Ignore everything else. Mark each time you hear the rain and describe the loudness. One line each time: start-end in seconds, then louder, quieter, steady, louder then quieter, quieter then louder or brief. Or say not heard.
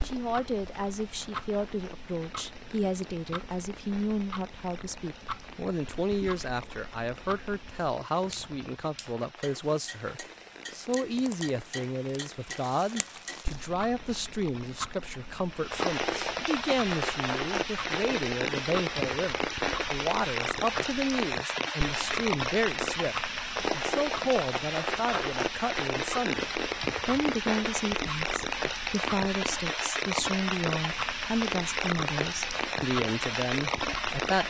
0.0-34.4 louder.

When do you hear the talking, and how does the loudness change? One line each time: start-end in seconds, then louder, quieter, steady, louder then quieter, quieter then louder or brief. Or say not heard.
0.0-34.4 steady.